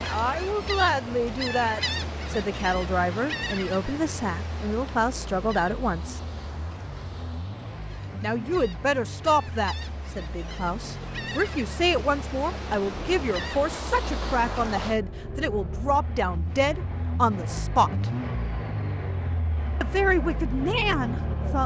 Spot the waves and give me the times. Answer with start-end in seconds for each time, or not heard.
0.0-15.0.